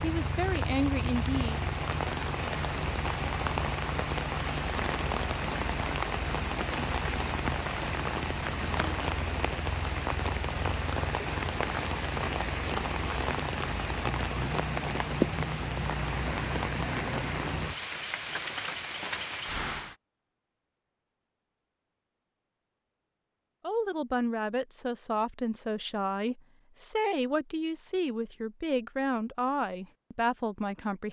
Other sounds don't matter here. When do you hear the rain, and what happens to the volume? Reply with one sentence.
The rain can be heard from 0.0 to 19.9 s, at a steady volume.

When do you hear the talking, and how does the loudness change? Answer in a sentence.
You can hear the talking briefly from 0.0 to 1.6 s; and from 23.6 to 31.0 s, at a steady volume.